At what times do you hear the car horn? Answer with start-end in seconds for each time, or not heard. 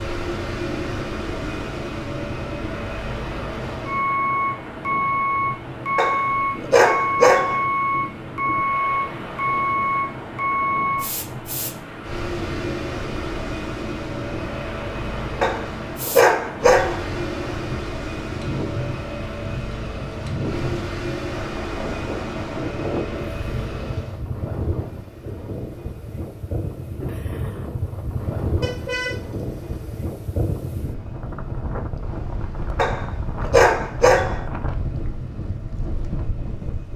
28.6-30.1.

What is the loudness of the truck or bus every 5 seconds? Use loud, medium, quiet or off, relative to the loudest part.
medium, loud, medium, medium, medium, quiet, quiet, quiet.